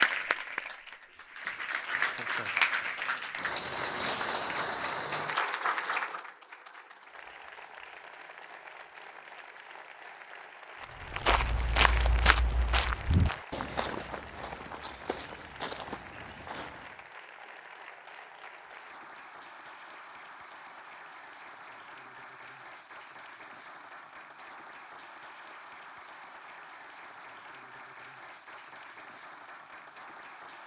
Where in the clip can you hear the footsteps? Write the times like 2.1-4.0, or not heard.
10.8-17.1.